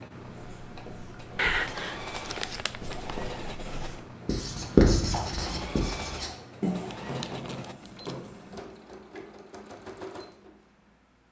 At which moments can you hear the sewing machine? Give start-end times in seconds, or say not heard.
0.0-11.2.